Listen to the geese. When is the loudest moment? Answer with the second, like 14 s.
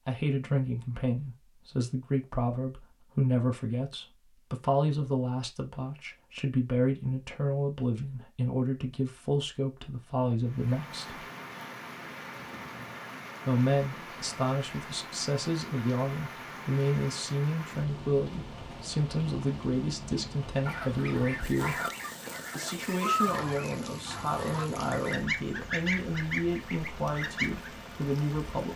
23 s.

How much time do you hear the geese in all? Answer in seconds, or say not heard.
7 s.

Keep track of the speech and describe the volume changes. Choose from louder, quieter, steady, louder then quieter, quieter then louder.
steady.